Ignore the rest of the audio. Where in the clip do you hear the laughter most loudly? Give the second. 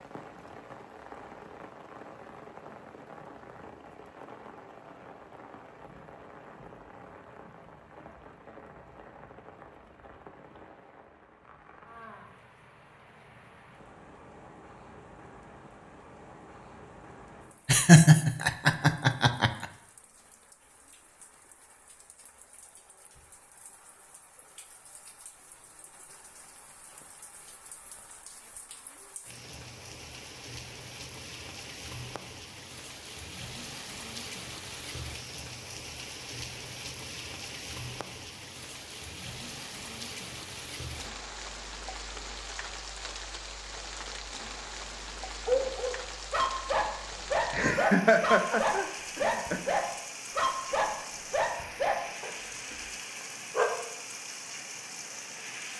18 s.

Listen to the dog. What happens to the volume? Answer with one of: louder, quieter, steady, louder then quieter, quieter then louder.
steady.